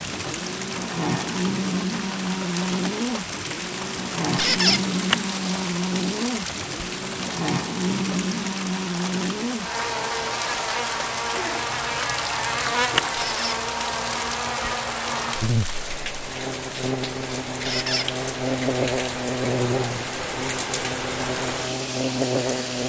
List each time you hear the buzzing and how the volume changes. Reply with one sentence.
The buzzing can be heard from 0.0 to 22.8 s, at a steady volume.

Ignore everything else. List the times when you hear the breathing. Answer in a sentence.
The breathing can't be heard in this clip.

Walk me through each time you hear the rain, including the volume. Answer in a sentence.
The rain can be heard from 0.0 to 22.8 s, at a steady volume.